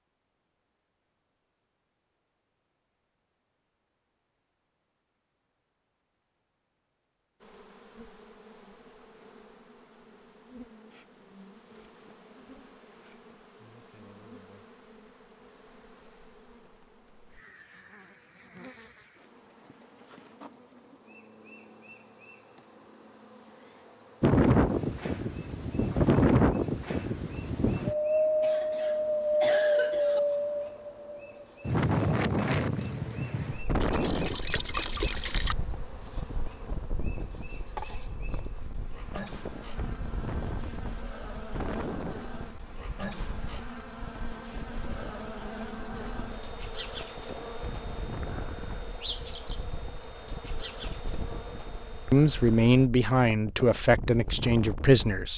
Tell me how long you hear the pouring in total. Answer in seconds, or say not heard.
2 s.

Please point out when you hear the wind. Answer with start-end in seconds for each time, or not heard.
24.2-55.3.